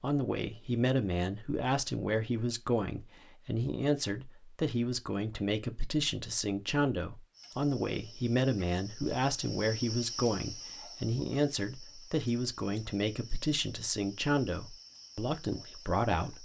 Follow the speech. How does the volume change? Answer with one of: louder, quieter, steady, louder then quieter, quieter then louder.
steady.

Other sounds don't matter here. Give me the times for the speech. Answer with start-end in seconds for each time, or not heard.
0.0-16.4.